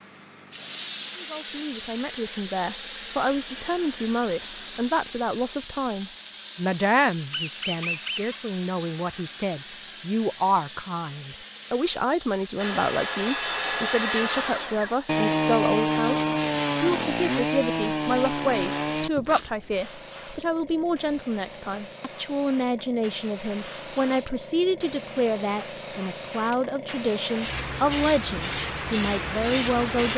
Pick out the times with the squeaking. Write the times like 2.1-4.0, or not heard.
7.3-8.3.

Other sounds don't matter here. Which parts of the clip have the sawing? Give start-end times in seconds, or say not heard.
12.6-19.4.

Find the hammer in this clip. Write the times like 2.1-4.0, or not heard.
not heard.